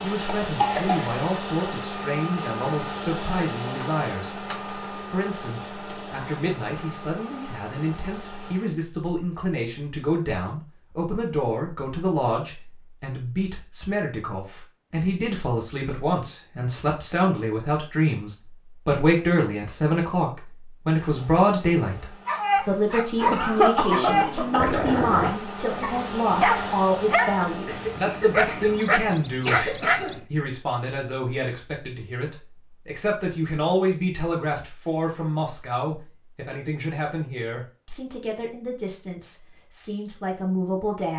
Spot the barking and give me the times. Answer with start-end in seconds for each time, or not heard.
22.2-30.2.